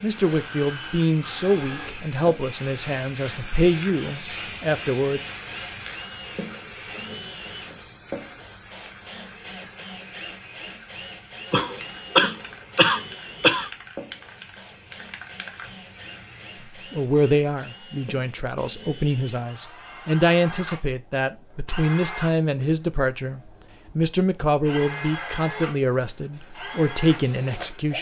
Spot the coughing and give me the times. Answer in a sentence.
You can hear the coughing from 11.5 to 13.7 s.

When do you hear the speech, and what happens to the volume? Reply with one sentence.
The speech can be heard from 0.0 to 5.2 s, at a steady volume; and from 16.9 to 27.9 s, at a steady volume.